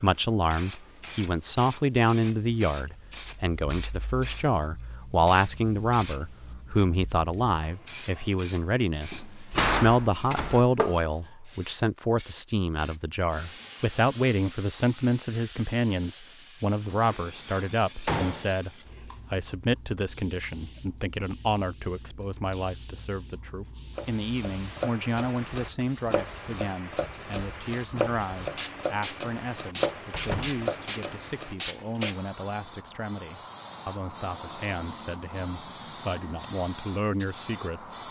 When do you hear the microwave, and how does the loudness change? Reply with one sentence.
The microwave can't be heard in this clip.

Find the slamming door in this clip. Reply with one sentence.
You can hear the slamming door from 9.1 to 10.7 s, from 16.9 to 18.6 s and from 30.1 to 30.6 s.